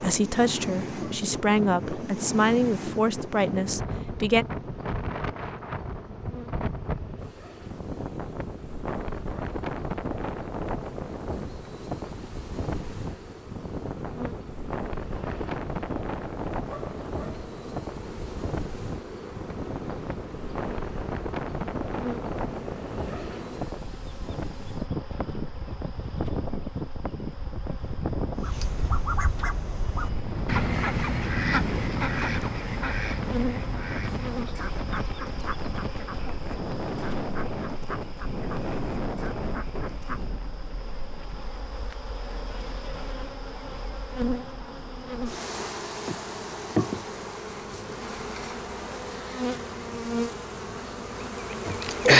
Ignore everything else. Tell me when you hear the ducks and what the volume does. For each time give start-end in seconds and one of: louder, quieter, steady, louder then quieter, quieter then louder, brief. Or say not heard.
28.4-40.3 quieter.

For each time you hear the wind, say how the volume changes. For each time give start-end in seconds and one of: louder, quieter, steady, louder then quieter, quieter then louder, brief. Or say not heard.
0.0-52.0 quieter.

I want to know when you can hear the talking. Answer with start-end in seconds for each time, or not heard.
0.0-4.5.